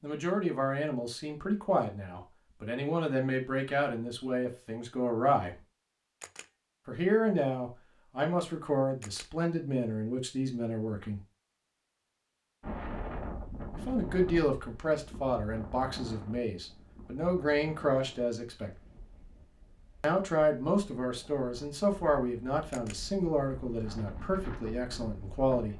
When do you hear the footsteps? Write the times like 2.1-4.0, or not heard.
not heard.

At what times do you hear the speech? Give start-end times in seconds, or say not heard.
0.0-5.5, 6.8-11.2, 13.8-18.7, 20.0-25.7.